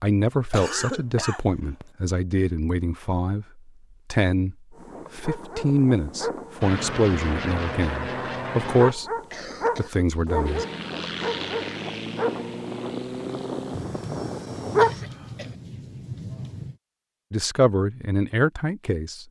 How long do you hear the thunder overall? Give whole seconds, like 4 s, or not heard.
3 s.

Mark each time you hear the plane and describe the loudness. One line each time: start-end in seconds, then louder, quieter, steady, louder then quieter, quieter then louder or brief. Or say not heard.
6.6-8.9 brief
10.4-15.1 quieter.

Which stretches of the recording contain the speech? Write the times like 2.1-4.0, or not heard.
0.0-9.1, 9.8-10.7, 17.3-19.2.